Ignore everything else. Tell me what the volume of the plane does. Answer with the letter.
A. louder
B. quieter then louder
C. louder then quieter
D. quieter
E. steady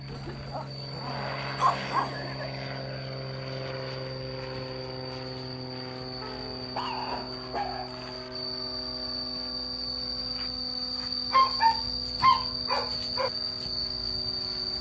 D.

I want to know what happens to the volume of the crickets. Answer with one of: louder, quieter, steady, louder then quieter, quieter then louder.
louder.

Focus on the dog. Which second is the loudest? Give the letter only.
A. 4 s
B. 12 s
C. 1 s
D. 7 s
B.